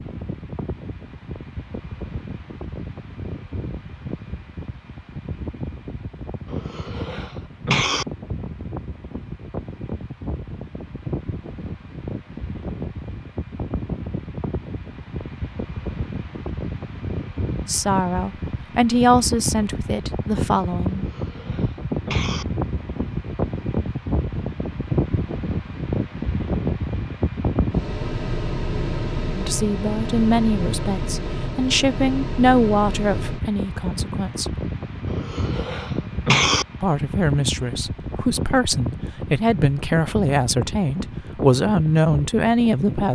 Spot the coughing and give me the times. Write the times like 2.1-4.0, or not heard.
6.5-8.1, 20.9-22.4, 35.1-36.6.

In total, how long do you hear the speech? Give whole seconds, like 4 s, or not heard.
15 s.